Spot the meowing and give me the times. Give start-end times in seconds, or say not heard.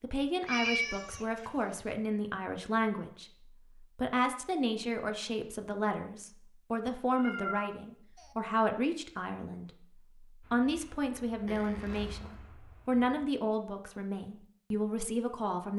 0.5-1.9, 7.0-8.3, 11.4-12.4.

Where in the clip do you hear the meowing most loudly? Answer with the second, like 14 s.
1 s.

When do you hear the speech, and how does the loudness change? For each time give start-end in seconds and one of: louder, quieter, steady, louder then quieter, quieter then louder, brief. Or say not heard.
0.0-15.7 steady.